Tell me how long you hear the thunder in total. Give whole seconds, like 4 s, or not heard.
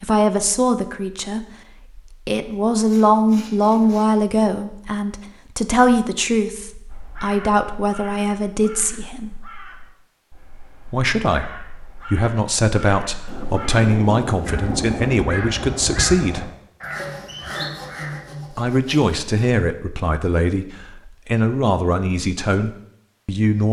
2 s.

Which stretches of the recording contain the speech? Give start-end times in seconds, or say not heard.
0.0-9.3, 10.8-16.5, 18.5-23.6.